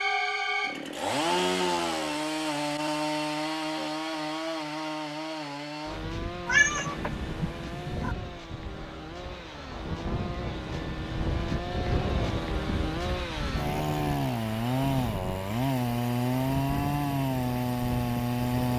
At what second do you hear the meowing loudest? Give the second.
7 s.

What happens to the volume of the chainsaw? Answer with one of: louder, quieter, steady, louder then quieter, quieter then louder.
quieter then louder.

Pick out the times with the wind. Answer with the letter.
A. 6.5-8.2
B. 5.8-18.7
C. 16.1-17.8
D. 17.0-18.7
B.